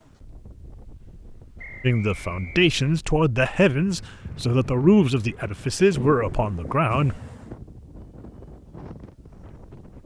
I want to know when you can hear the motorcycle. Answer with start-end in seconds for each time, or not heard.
not heard.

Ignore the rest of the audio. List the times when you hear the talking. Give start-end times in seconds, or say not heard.
1.8-7.2.